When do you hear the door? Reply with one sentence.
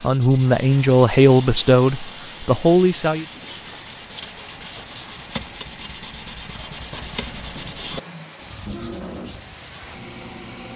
You can't hear the door here.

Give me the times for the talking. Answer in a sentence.
The talking can be heard from 0.0 to 3.2 s.